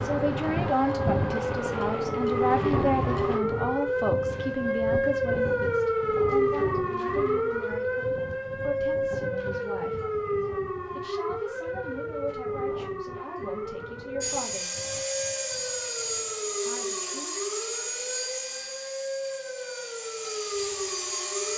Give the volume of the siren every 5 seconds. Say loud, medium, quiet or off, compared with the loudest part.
loud, loud, medium, medium, medium.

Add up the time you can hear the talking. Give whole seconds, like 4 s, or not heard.
15 s.